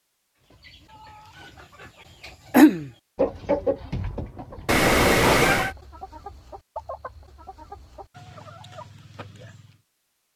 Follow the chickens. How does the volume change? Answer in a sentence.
The volume of the chickens goes down.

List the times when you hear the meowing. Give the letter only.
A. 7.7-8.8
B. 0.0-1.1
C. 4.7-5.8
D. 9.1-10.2
C.